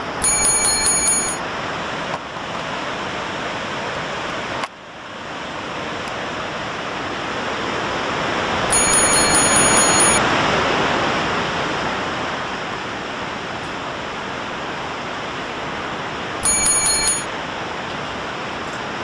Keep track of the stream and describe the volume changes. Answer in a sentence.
The loudness of the stream goes up, then down.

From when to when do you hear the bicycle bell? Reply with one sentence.
The bicycle bell can be heard from 0.2 to 1.4 s, from 8.7 to 10.2 s and from 16.4 to 17.2 s.